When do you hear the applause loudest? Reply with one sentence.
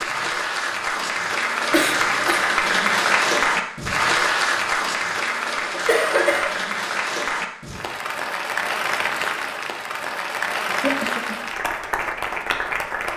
The volume of the applause peaks at 3 seconds.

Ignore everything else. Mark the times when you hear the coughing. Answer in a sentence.
The coughing can be heard from 1.7 to 2.5 s, from 5.7 to 6.5 s and from 10.7 to 11.4 s.